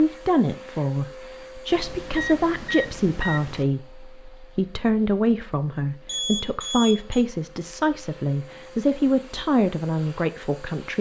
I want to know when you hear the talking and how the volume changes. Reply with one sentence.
You can hear the talking from 0.0 to 10.9 s, at a steady volume.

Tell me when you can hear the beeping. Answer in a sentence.
The beeping can be heard from 1.7 to 3.6 s and from 6.0 to 7.2 s.